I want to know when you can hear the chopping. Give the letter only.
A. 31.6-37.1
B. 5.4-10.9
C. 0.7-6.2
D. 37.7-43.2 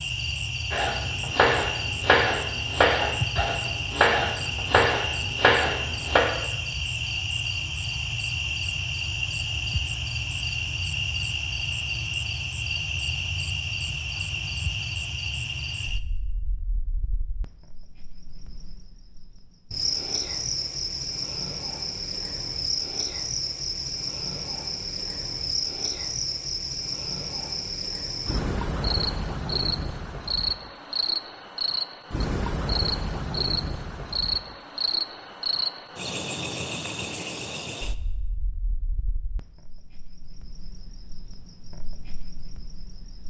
C.